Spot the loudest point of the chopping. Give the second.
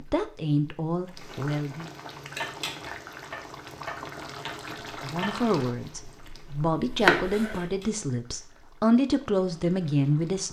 7 s.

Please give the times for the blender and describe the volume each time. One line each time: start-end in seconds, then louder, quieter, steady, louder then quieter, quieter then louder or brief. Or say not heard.
not heard.